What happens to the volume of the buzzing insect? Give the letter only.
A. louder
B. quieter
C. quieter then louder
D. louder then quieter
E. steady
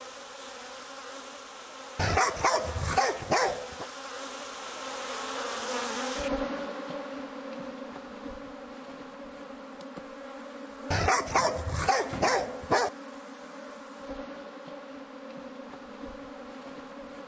D.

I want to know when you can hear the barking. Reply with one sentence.
The barking can be heard from 1.9 to 3.9 s and from 10.9 to 12.9 s.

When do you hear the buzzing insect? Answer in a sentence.
The buzzing insect can be heard from 0.0 to 17.2 s.